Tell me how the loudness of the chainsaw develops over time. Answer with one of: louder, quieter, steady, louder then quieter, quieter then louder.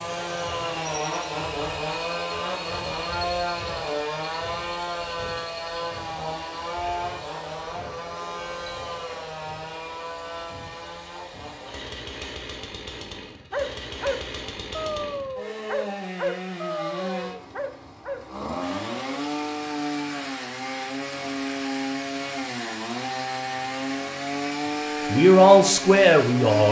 quieter then louder.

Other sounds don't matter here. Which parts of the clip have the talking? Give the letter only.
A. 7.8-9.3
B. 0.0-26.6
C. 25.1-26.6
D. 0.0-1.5
C.